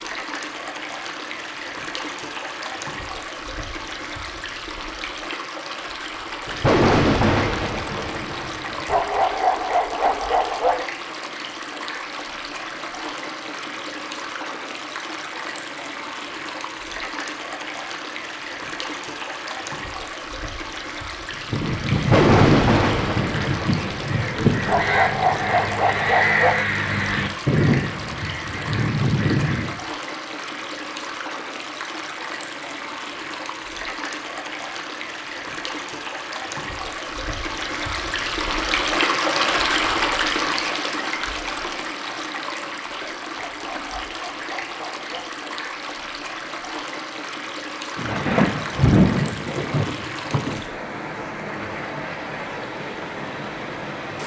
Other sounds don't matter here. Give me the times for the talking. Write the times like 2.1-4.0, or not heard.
not heard.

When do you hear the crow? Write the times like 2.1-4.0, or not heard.
21.3-29.8.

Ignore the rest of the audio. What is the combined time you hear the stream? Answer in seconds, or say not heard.
54 s.